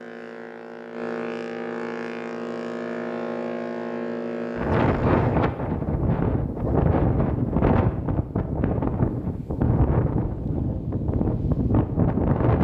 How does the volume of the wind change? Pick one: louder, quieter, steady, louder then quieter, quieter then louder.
steady.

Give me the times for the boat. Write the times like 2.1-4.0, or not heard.
0.0-5.4.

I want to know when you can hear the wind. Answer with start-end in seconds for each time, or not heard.
4.5-12.5.